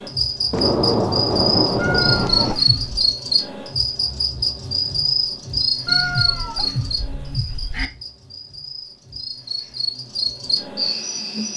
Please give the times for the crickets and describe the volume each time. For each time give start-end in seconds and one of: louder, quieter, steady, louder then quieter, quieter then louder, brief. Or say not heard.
0.0-11.5 quieter then louder.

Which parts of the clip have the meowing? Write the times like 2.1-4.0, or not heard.
1.8-3.1, 5.8-7.9.